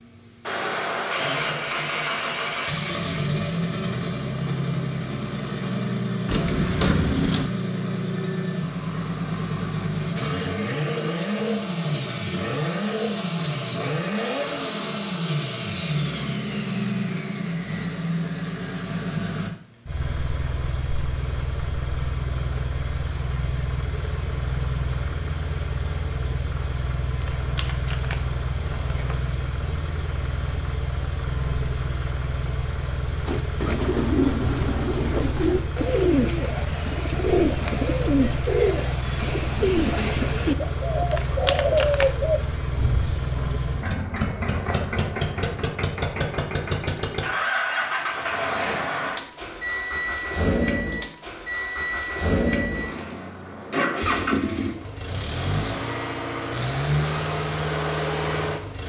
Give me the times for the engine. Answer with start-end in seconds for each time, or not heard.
0.0-58.8.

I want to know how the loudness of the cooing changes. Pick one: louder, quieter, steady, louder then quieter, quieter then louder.
steady.